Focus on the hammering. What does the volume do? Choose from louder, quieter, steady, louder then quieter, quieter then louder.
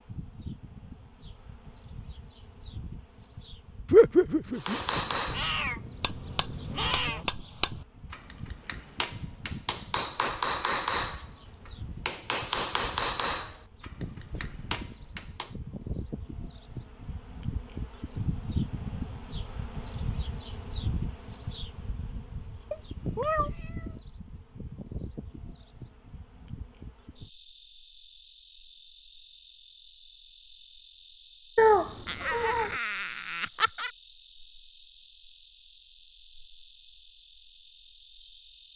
steady.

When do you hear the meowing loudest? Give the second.
32 s.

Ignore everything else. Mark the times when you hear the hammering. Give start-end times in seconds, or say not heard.
4.5-11.2, 12.1-15.5.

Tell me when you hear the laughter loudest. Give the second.
4 s.